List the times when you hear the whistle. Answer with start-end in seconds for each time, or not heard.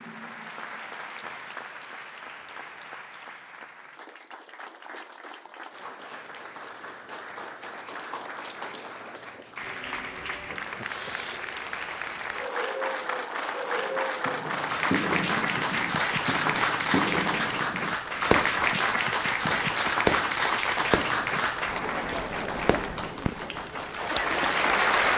not heard.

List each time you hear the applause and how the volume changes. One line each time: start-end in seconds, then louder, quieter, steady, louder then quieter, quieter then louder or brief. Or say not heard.
0.0-25.1 louder.